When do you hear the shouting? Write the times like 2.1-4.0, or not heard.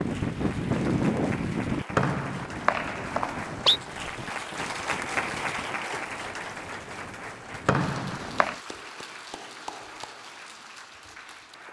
not heard.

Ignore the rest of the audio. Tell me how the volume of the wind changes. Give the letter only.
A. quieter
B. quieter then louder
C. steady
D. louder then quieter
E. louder
A.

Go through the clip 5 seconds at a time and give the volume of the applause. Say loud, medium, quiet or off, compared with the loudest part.
loud, loud, medium.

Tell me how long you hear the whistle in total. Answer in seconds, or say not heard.
3 s.